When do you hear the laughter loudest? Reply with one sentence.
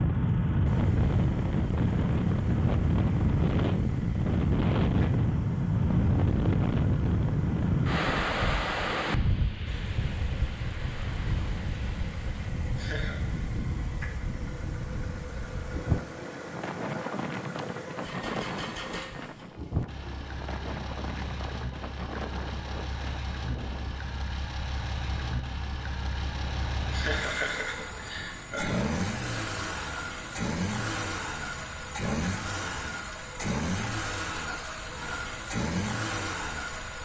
The volume of the laughter peaks at 27 seconds.